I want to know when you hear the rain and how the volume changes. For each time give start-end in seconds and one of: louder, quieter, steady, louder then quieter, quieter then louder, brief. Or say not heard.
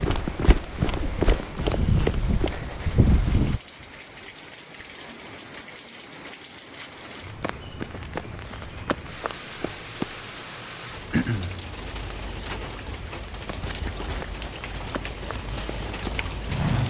0.1-16.8 louder.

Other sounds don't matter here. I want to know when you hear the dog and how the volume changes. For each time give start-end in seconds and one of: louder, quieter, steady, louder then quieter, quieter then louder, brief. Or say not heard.
not heard.